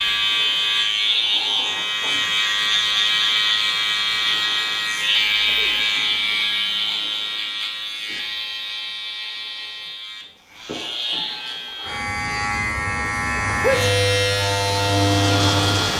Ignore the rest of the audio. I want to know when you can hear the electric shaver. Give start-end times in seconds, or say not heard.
0.0-15.9.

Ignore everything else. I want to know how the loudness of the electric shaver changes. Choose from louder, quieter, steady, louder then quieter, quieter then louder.
quieter then louder.